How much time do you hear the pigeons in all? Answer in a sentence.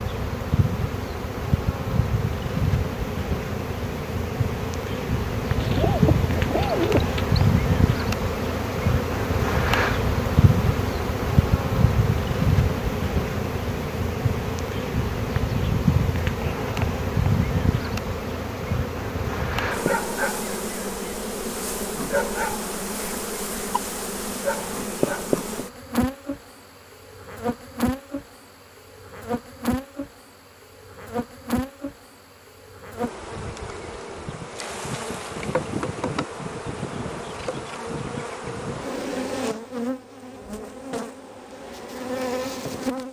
The pigeons can be heard for 2 seconds in total.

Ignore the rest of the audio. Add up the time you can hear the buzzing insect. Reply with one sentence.
The buzzing insect can be heard for 43 seconds in total.